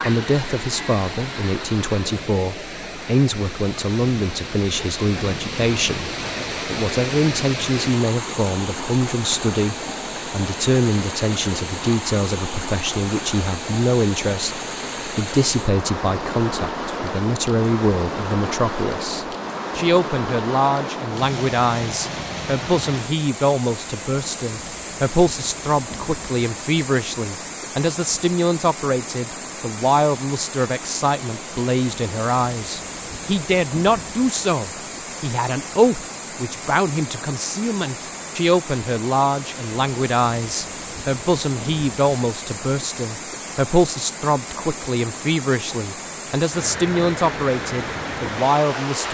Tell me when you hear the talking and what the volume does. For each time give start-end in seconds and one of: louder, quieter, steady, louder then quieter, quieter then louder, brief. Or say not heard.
0.1-49.0 steady.